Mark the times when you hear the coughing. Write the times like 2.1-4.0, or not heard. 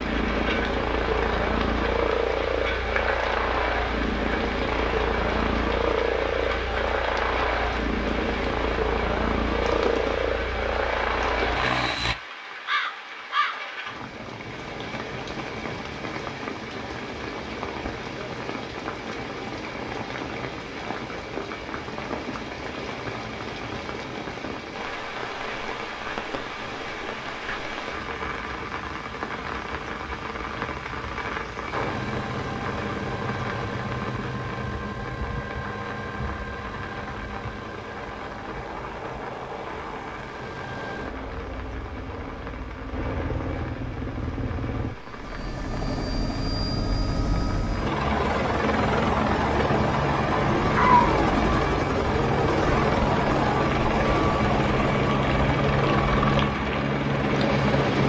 50.8-51.3.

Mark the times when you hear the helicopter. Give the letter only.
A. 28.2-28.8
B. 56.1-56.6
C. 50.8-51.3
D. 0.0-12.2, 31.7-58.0
D.